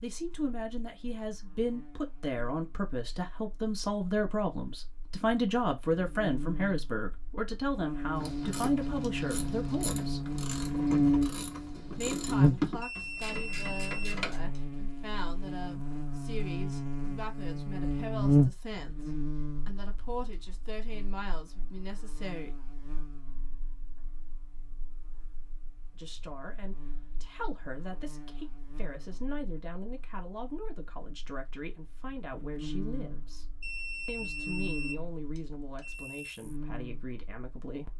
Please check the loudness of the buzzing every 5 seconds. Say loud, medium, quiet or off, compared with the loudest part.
quiet, medium, loud, loud, quiet, quiet, quiet, quiet.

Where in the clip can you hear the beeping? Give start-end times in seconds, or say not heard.
12.8-14.6, 33.6-36.4.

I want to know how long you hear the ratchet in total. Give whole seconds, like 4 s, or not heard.
6 s.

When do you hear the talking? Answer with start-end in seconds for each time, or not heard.
0.0-10.2, 11.9-22.6, 25.9-37.9.